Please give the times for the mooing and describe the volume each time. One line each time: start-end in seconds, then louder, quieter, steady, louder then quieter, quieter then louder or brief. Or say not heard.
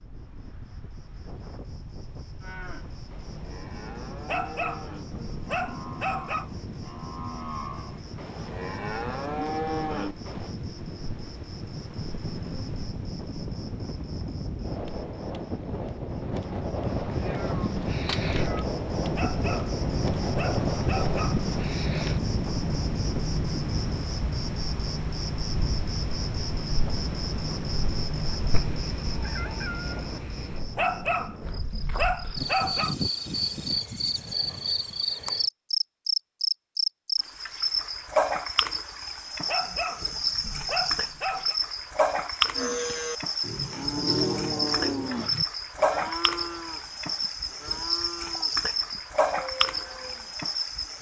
2.4-10.6 louder
42.5-50.4 quieter.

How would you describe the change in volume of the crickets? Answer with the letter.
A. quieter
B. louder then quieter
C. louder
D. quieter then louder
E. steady
C.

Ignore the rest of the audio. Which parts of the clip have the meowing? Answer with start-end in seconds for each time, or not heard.
17.2-18.6, 28.5-30.6.